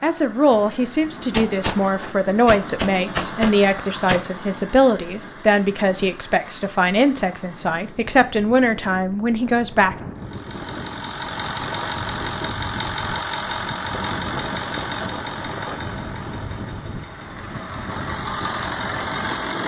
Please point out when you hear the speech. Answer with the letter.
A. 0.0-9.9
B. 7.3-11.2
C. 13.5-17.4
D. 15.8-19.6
A.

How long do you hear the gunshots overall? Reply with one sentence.
The gunshots can be heard for 4 seconds in total.